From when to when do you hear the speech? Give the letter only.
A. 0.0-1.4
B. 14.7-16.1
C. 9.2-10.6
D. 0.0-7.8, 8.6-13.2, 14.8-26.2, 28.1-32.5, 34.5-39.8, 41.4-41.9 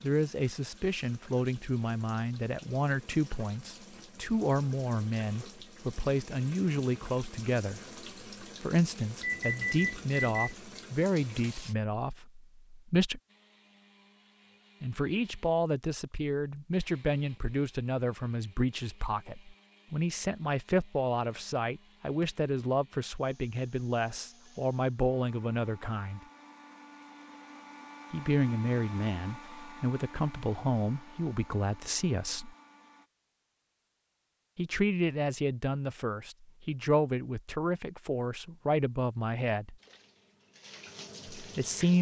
D.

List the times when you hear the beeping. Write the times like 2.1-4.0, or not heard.
9.2-10.6.